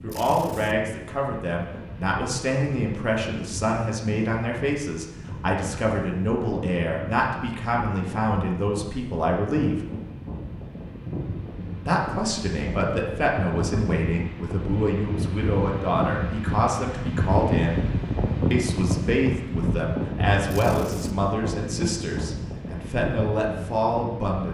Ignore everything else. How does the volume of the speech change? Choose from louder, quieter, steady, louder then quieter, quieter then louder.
steady.